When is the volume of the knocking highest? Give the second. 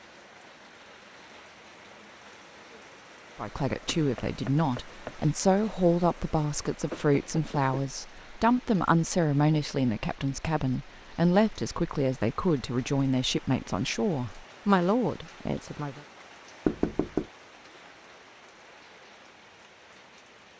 17 s.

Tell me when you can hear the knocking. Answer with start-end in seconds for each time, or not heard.
4.0-5.2, 6.9-7.8, 16.6-17.2.